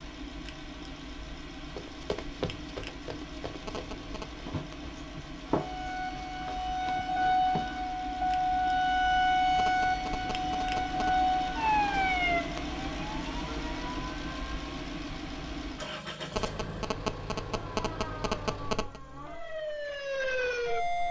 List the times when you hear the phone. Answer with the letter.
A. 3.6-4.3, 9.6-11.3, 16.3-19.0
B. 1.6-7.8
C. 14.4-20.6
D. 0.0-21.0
A.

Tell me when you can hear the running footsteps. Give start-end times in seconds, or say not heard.
1.6-7.8.